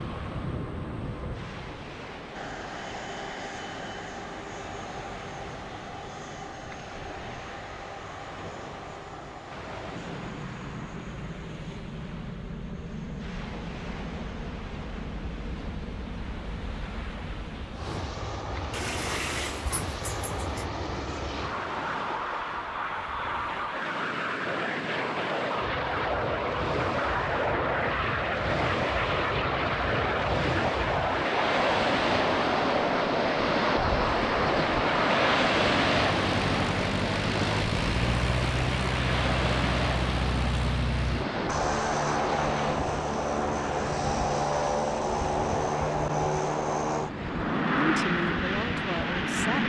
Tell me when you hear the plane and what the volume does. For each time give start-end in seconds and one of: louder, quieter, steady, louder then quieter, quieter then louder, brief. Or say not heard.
0.0-49.6 louder.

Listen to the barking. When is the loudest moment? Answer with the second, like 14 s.
19 s.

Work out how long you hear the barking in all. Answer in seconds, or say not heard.
2 s.